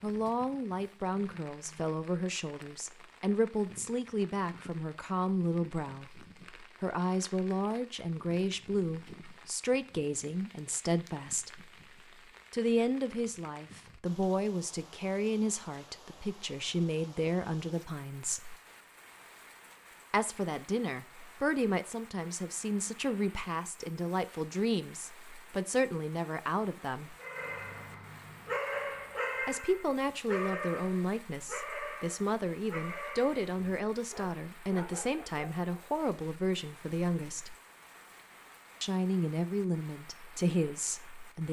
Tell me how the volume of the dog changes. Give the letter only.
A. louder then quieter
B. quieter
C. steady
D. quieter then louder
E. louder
B.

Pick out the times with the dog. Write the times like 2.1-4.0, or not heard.
27.2-35.8.